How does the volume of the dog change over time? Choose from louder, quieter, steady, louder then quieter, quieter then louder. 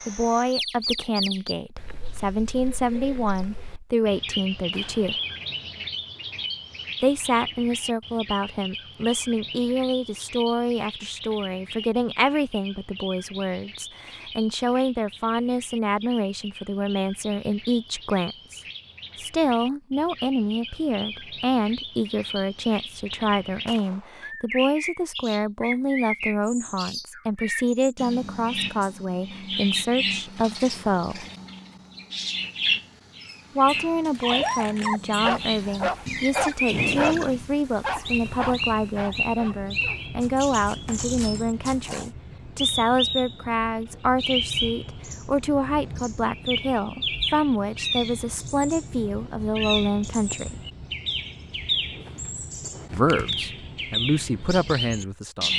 quieter.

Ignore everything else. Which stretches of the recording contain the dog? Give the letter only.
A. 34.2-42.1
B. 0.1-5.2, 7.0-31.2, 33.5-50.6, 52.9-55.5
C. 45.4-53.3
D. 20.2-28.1
A.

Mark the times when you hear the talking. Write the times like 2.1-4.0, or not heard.
0.1-5.2, 7.0-31.2, 33.5-50.6, 52.9-55.5.